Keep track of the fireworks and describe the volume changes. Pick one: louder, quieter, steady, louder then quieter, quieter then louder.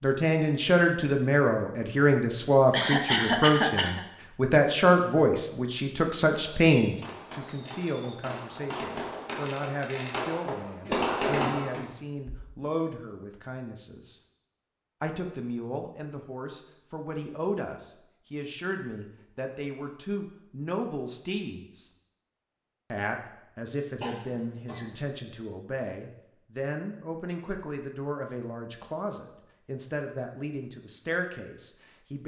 louder.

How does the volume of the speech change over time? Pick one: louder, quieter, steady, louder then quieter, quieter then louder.
quieter.